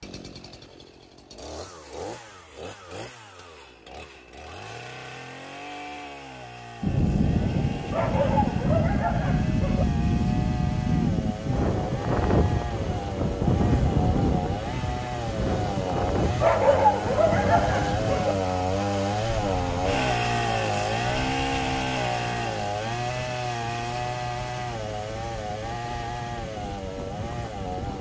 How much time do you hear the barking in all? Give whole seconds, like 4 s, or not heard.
4 s.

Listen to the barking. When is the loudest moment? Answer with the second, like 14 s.
17 s.